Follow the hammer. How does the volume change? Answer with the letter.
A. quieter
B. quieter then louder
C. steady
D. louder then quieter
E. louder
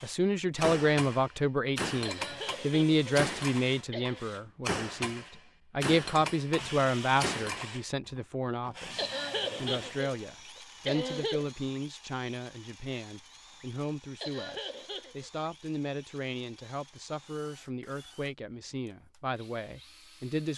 C.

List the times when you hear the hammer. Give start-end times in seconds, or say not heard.
0.6-8.2.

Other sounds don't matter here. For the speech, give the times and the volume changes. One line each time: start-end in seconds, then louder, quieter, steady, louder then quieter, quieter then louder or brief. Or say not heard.
0.0-20.5 quieter.